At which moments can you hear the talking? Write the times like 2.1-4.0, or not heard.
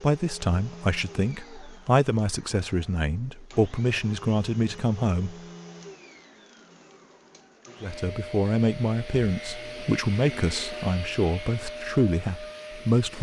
0.0-5.3, 7.8-13.1.